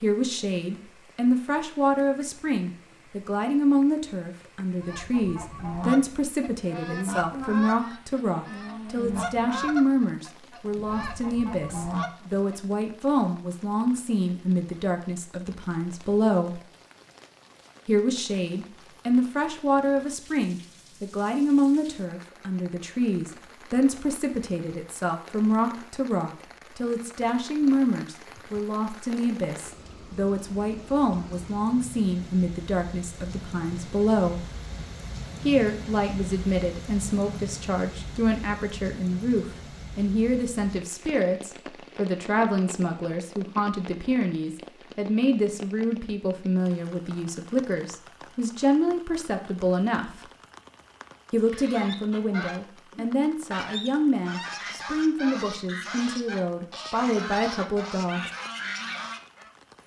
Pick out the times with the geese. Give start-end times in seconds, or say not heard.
4.7-12.6, 51.4-59.5.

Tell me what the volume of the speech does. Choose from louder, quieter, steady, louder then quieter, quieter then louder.
steady.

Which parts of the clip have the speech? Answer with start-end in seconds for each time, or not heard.
0.0-16.6, 17.9-34.5, 35.4-50.1, 51.3-58.3.